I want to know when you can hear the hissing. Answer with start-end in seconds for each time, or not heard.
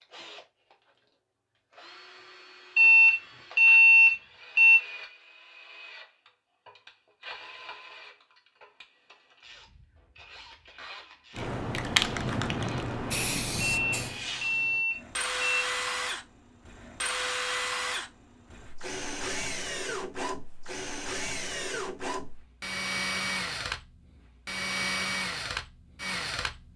11.3-14.8.